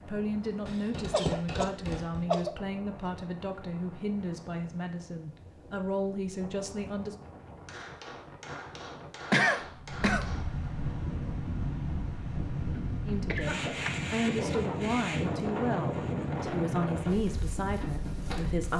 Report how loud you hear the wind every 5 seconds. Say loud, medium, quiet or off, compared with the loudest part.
quiet, quiet, loud, loud.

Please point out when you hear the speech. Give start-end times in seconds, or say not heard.
0.0-7.2, 13.1-18.7.